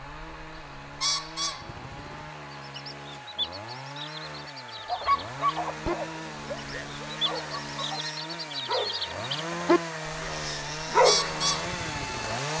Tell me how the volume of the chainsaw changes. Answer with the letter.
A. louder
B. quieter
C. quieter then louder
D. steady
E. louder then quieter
A.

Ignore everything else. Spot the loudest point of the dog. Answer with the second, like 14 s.
11 s.